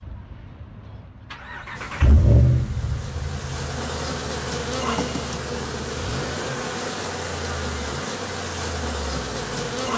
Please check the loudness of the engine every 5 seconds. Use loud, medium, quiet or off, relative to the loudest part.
loud, medium.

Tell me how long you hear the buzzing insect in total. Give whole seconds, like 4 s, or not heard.
8 s.